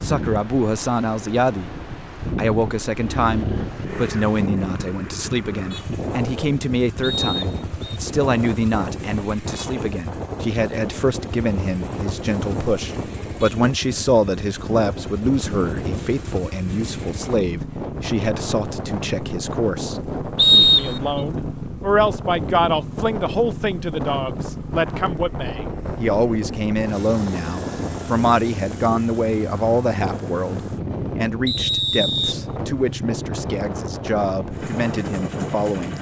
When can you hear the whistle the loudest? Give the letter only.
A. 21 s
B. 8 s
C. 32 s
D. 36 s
A.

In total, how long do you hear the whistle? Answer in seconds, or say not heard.
3 s.